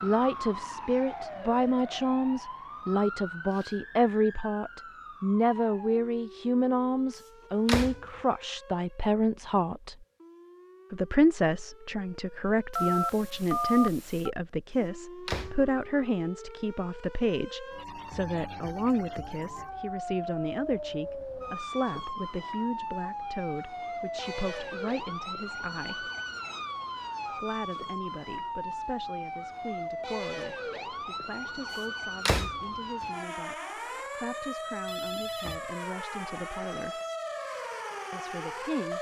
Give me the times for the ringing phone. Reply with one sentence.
You can hear the ringing phone from 12.7 to 14.3 s and from 34.9 to 35.6 s.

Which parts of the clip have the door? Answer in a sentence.
You can hear the door from 7.7 to 8.1 s, from 15.2 to 15.7 s and from 32.2 to 33.0 s.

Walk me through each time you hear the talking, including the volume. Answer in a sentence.
You can hear the talking from 0.0 to 9.9 s, at a steady volume; from 10.9 to 26.1 s, getting quieter; from 27.3 to 37.0 s, at a steady volume; and briefly from 38.1 to 38.9 s.